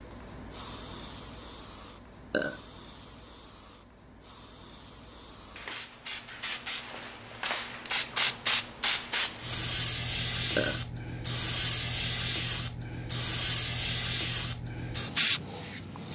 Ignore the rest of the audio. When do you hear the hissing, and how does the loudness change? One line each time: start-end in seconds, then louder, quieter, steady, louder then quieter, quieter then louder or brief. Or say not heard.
0.0-16.1 louder.